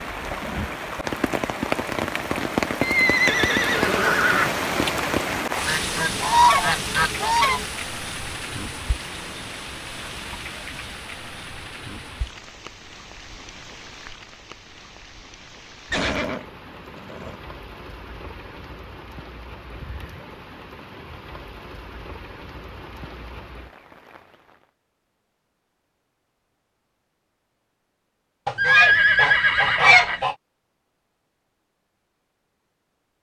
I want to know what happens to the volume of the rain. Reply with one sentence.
The volume of the rain goes down.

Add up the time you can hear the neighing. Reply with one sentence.
The neighing can be heard for 5 seconds in total.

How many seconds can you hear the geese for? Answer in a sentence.
You can hear the geese for 4 seconds altogether.